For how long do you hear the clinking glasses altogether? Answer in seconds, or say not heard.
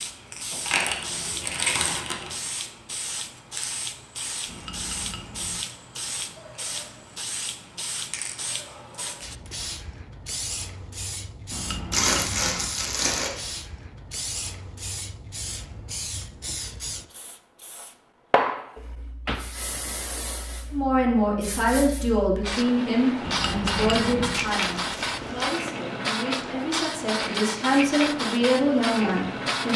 4 s.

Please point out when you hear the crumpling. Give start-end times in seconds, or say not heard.
0.7-2.5, 11.9-13.3, 24.3-25.5.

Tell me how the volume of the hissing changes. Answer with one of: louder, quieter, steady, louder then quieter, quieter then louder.
louder.